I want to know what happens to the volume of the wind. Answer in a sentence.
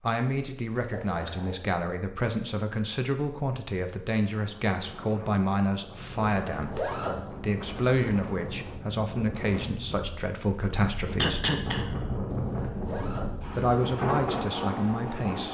The volume of the wind goes up.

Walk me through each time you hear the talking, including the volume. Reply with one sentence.
You can hear the talking from 0.0 to 11.4 s, at a steady volume; and briefly from 13.6 to 15.4 s.